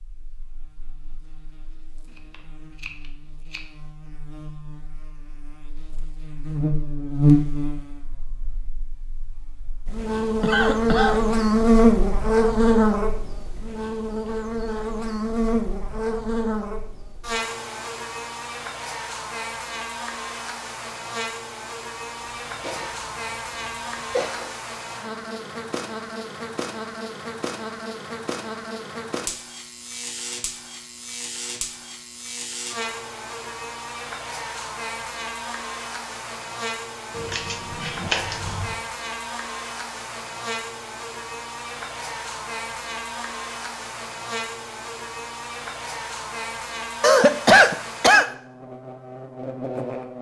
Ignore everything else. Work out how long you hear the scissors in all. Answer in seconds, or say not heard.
3 s.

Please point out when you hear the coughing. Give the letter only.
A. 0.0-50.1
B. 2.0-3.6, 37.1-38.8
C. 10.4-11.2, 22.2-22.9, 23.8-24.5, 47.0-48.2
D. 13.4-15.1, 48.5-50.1
C.